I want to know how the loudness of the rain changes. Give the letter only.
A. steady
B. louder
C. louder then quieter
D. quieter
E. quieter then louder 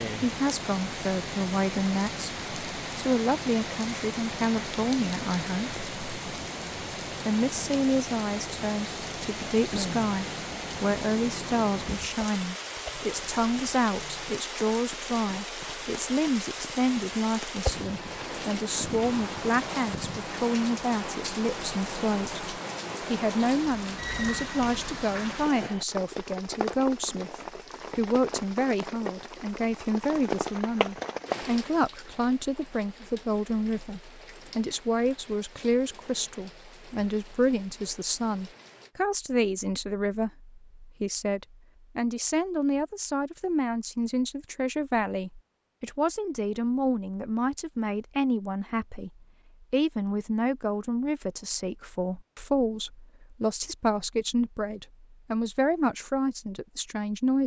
D.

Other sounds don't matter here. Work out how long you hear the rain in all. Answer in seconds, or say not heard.
39 s.